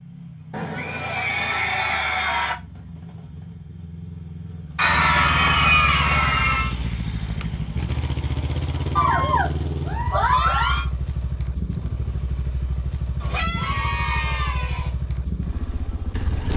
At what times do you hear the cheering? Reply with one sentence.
You can hear the cheering from 0.5 to 2.5 s, from 4.8 to 6.7 s, from 8.9 to 10.8 s and from 13.2 to 14.9 s.